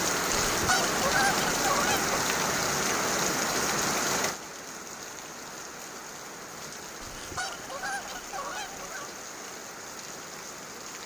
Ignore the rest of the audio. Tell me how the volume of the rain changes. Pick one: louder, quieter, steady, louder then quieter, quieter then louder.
quieter.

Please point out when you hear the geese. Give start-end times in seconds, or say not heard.
0.5-2.1, 7.0-9.1.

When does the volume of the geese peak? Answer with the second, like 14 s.
1 s.